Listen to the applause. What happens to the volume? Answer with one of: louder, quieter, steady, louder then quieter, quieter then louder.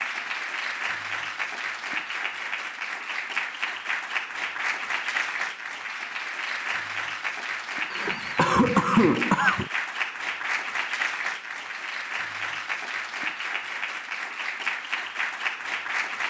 steady.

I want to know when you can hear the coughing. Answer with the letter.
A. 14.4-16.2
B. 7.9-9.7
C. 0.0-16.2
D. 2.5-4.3
B.